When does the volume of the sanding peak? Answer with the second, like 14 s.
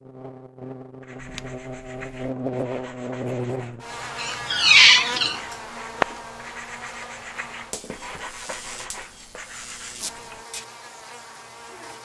6 s.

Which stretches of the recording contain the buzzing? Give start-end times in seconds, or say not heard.
0.0-11.9.